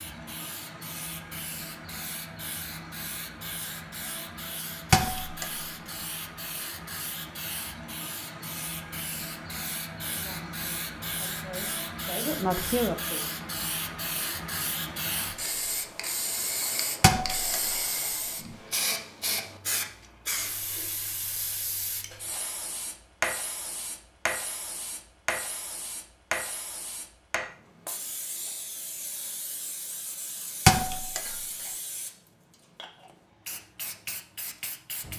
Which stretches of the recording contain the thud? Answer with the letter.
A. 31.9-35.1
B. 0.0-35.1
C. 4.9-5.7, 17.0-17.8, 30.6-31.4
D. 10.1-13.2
C.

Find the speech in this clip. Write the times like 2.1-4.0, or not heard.
10.1-13.2.